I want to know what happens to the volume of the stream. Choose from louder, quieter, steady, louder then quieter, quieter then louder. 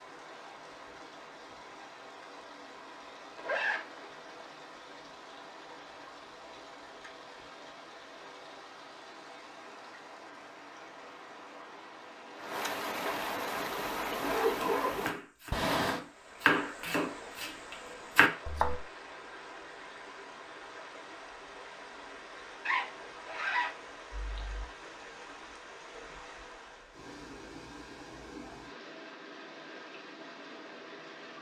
louder then quieter.